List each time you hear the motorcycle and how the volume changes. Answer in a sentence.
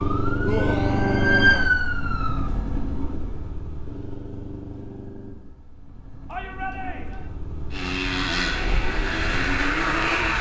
The motorcycle can be heard from 0.0 to 10.3 s, getting quieter then louder.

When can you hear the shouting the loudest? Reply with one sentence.
The volume of the shouting peaks at 1 second.